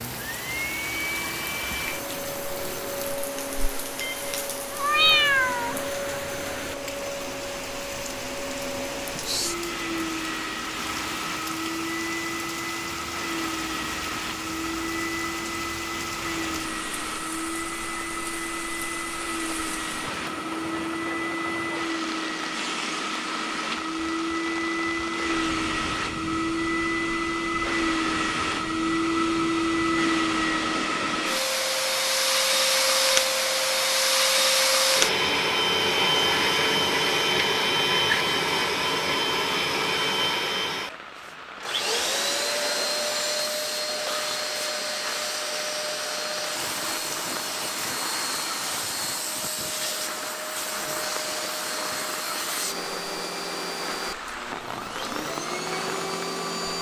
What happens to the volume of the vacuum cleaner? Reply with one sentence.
The loudness of the vacuum cleaner goes up, then down.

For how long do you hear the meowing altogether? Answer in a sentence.
You can hear the meowing for 2 seconds altogether.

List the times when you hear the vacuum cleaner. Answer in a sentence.
The vacuum cleaner can be heard from 0.0 to 56.7 s.